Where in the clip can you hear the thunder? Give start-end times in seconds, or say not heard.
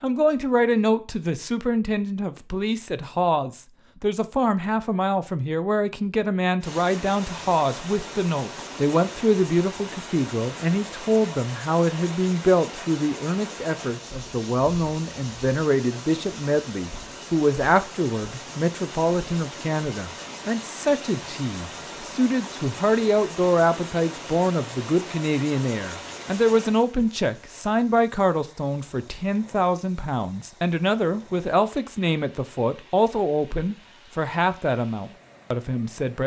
not heard.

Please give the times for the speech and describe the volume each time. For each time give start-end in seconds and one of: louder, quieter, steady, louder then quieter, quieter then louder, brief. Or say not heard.
0.0-36.2 steady.